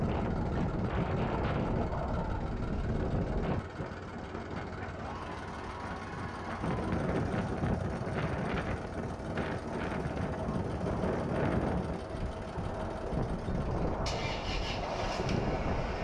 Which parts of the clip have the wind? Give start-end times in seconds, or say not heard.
0.0-16.0.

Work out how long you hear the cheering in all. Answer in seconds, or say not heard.
2 s.